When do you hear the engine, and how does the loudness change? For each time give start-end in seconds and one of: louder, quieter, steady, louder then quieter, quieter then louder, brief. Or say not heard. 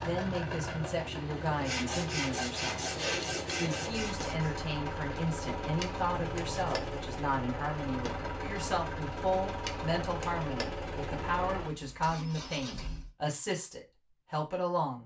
0.0-13.1 steady.